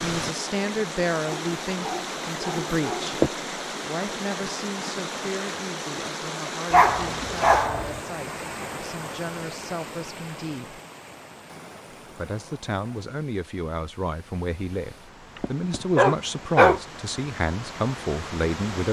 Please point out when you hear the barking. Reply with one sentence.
The barking can be heard from 1.2 to 3.3 s, from 6.7 to 8.0 s and from 15.3 to 16.8 s.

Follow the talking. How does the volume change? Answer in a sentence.
The loudness of the talking goes down, then up.